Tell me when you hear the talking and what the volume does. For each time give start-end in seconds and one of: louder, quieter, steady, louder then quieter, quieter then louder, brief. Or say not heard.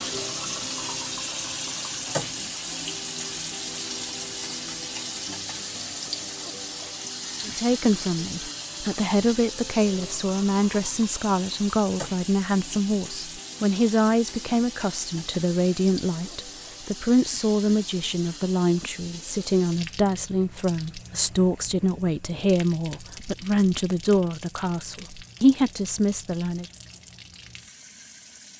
7.5-26.6 steady.